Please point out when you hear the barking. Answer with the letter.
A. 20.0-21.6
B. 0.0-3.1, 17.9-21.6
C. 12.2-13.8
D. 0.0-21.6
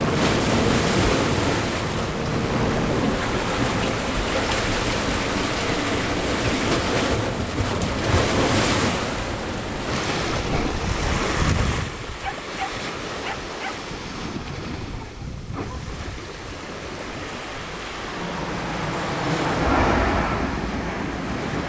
C.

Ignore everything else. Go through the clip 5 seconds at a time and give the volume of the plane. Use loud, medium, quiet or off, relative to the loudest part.
loud, off, off, loud, loud.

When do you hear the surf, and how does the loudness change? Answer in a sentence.
You can hear the surf from 0.0 to 21.6 s, getting quieter.